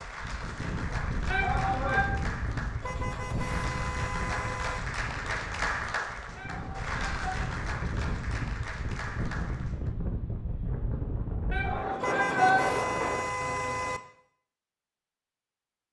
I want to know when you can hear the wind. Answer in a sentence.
You can hear the wind from 0.0 to 13.2 s.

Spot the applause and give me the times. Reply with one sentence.
The applause can be heard from 0.0 to 9.9 s.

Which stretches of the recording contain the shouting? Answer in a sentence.
The shouting can be heard from 1.3 to 2.0 s, from 6.3 to 7.3 s and from 11.5 to 12.7 s.